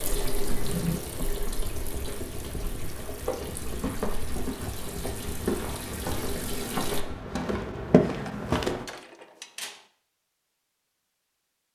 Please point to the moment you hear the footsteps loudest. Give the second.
8 s.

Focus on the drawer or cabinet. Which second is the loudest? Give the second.
1 s.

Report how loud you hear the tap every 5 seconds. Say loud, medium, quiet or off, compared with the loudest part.
loud, loud, off.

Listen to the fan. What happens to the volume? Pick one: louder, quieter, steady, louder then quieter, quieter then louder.
steady.